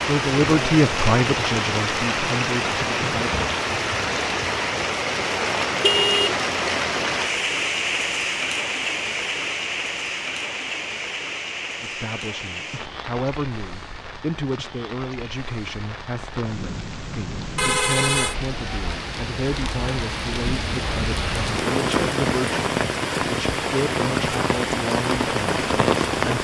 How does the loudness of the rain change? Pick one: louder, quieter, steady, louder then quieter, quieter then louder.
quieter then louder.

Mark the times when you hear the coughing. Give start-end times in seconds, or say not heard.
not heard.